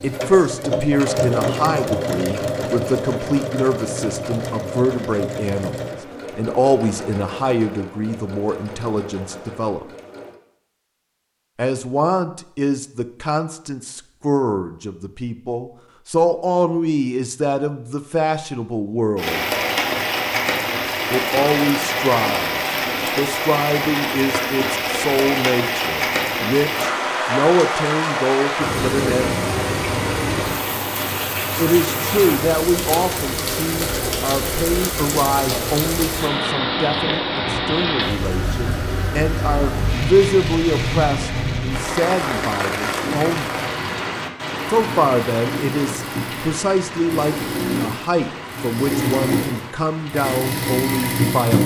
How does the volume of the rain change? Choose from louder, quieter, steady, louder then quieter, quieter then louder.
quieter.